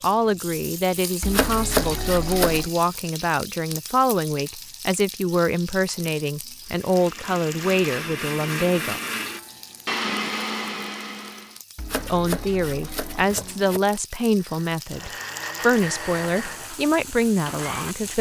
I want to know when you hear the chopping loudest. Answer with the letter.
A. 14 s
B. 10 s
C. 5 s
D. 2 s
D.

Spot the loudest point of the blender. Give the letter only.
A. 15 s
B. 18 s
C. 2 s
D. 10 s
D.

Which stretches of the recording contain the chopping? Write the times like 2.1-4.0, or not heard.
1.2-2.7, 11.8-13.8.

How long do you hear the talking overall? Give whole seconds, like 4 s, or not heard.
15 s.